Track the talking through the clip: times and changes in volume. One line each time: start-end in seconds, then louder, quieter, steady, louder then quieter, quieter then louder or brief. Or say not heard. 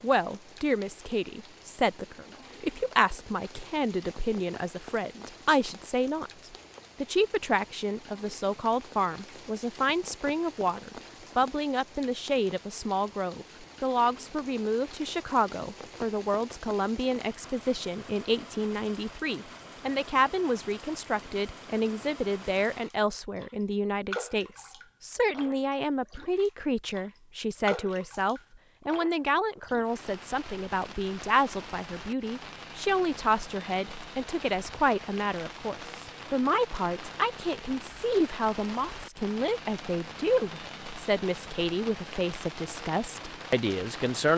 0.0-6.3 steady
7.0-44.3 steady.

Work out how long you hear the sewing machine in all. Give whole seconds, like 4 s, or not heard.
not heard.